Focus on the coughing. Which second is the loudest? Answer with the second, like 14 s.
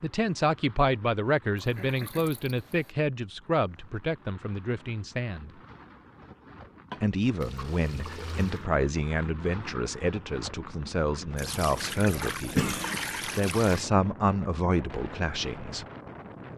13 s.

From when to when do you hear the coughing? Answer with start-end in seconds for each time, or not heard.
1.2-2.4, 6.9-8.1, 12.6-13.0.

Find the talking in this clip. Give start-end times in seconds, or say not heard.
0.0-5.5, 7.0-15.8.